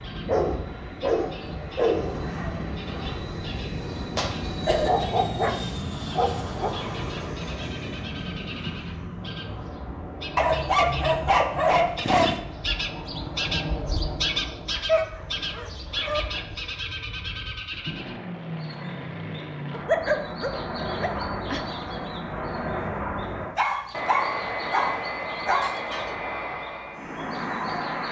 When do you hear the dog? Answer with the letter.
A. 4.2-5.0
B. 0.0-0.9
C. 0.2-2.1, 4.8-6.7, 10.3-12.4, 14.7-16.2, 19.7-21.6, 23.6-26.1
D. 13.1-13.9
C.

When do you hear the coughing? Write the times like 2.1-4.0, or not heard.
4.2-5.0.